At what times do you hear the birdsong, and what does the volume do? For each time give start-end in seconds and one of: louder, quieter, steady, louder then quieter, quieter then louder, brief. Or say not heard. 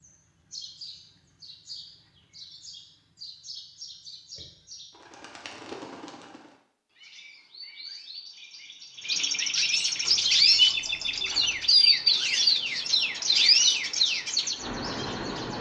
0.0-15.5 louder.